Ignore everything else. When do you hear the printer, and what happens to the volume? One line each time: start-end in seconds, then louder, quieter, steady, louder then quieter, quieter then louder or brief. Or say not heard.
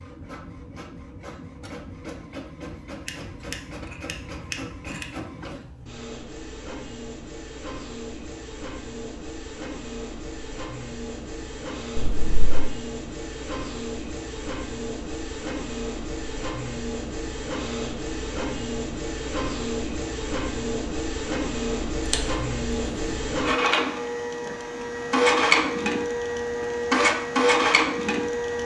0.0-28.6 louder.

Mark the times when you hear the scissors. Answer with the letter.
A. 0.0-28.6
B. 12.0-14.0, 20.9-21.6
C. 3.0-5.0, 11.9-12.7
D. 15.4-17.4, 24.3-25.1
C.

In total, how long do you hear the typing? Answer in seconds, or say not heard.
not heard.